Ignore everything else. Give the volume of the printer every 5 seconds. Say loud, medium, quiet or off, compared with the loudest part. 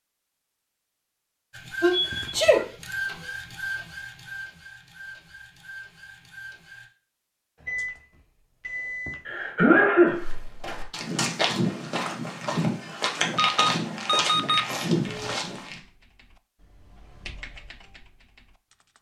loud, medium, off, off.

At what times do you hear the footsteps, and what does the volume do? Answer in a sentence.
The footsteps can be heard from 10.1 to 15.8 s, at a steady volume.